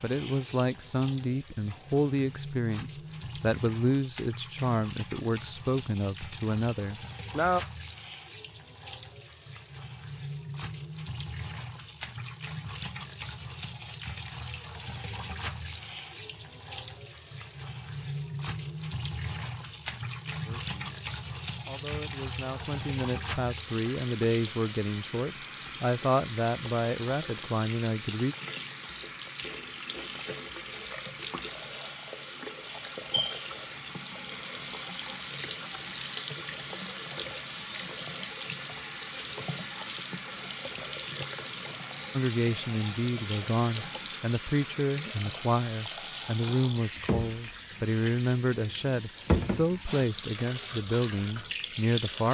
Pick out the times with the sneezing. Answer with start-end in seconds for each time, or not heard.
not heard.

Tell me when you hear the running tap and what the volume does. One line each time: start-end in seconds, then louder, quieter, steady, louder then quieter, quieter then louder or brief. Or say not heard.
0.0-52.2 louder.